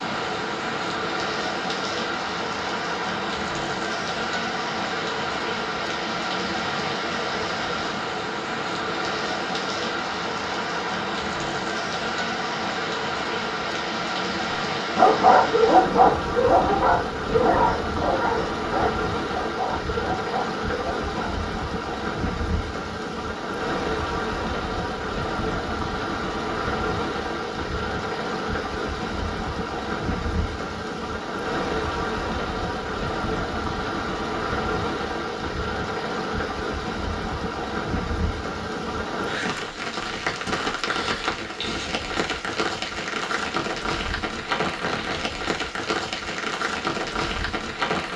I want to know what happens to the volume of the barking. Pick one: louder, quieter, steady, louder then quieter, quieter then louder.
quieter.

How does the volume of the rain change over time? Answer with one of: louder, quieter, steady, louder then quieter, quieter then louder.
steady.